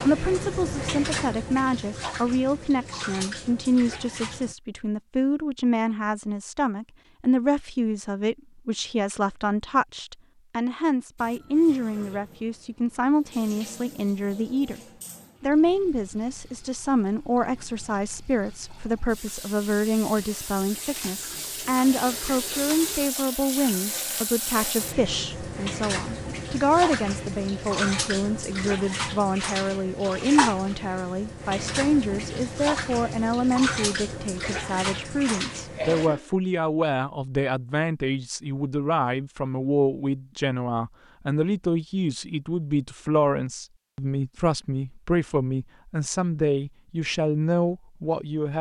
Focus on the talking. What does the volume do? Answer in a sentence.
The volume of the talking stays about the same.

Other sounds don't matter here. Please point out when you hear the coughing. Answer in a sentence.
The coughing can be heard from 34.4 to 36.3 s.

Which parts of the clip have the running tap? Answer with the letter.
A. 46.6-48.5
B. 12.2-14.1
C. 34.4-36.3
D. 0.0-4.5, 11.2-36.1
D.